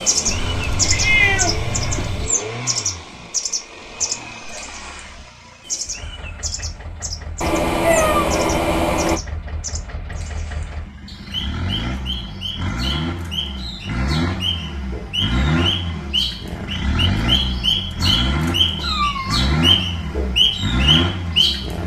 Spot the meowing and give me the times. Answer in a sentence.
You can hear the meowing from 0.2 to 2.2 s, from 7.4 to 9.2 s and from 18.8 to 19.4 s.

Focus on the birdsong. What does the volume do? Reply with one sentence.
The loudness of the birdsong goes down, then up.